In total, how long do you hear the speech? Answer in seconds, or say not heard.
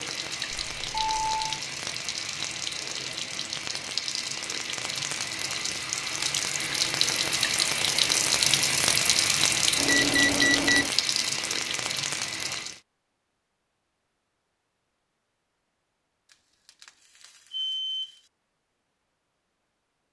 not heard.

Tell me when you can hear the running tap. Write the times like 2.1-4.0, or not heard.
0.0-12.8.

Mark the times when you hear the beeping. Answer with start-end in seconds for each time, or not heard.
0.5-1.6, 9.8-10.9, 16.3-18.2.